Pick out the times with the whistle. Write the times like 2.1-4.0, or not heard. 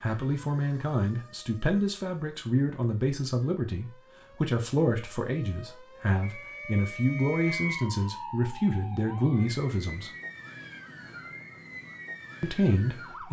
6.2-7.9.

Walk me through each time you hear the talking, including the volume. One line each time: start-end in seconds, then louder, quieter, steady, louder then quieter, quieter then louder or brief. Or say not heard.
0.0-10.1 steady
12.4-13.2 brief.